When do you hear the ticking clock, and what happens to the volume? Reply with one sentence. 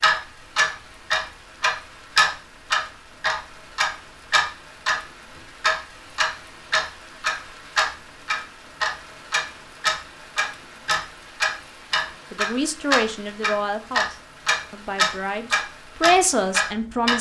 The ticking clock can be heard from 0.0 to 17.1 s, at a steady volume.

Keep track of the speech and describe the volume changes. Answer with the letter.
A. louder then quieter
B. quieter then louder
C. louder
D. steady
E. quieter
B.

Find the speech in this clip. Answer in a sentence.
You can hear the speech from 12.3 to 17.1 s.